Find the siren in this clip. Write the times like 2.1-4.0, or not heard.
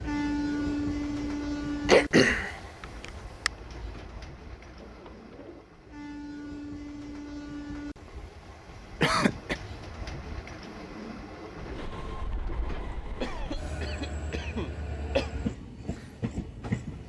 not heard.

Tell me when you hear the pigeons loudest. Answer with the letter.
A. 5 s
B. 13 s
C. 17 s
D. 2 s
B.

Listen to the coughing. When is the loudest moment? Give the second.
2 s.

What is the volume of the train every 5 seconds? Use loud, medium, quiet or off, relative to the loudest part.
loud, medium, medium, loud.